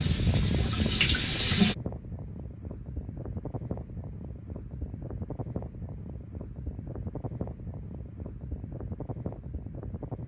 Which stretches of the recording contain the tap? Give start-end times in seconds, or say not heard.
0.0-1.8.